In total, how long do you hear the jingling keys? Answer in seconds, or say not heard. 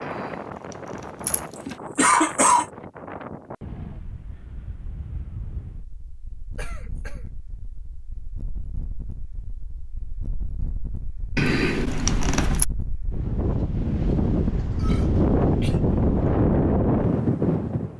3 s.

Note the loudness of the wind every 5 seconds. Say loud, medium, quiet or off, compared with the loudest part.
quiet, quiet, medium, loud.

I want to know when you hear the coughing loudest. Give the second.
2 s.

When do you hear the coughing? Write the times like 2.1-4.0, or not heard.
1.9-2.6, 6.5-7.2, 14.8-15.8.